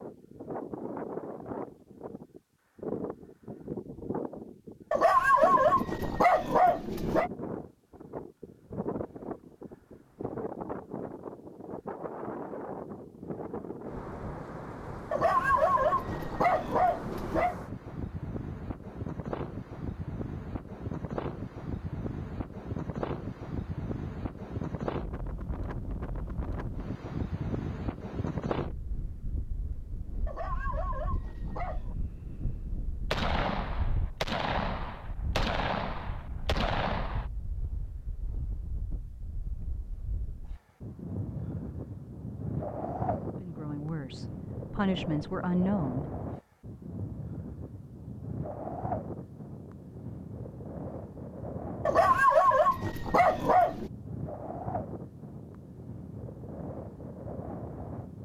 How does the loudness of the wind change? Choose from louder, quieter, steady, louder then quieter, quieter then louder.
steady.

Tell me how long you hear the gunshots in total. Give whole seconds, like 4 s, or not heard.
4 s.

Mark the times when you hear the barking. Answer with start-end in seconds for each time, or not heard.
4.9-7.3, 15.1-17.6, 30.2-31.9, 51.9-53.9.